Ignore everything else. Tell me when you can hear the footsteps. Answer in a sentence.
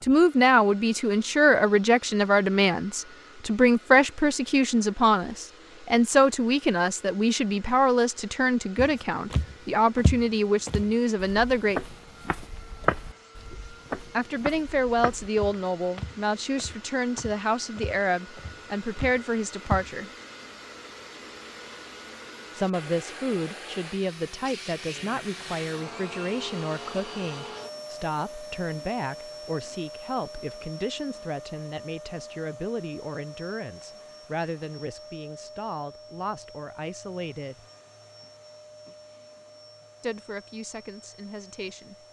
You can hear the footsteps from 8.8 to 19.9 s.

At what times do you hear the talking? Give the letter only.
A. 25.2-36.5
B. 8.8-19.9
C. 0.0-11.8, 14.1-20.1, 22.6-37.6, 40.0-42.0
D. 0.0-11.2
C.